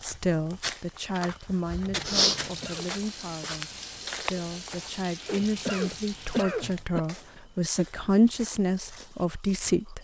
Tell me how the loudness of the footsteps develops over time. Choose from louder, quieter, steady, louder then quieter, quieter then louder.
louder then quieter.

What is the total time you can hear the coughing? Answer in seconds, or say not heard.
2 s.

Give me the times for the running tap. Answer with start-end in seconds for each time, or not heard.
2.3-6.5.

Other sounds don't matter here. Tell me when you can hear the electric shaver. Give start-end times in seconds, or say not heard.
not heard.